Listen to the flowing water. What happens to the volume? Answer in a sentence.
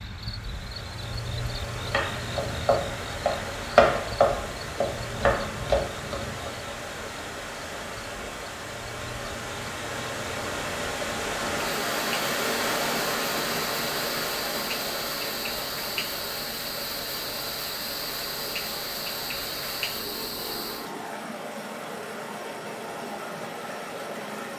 The volume of the flowing water goes up, then down.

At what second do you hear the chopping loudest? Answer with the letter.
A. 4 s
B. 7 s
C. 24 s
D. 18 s
A.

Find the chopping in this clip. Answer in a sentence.
The chopping can be heard from 1.8 to 6.5 s.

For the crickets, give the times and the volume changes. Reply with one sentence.
You can hear the crickets from 0.0 to 20.9 s, getting quieter then louder.